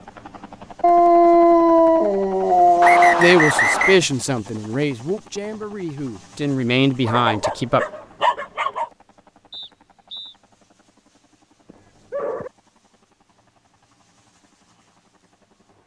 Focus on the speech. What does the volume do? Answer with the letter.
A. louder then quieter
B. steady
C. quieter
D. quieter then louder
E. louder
D.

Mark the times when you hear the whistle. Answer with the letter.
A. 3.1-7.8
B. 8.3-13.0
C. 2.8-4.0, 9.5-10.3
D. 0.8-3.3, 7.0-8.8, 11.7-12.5
C.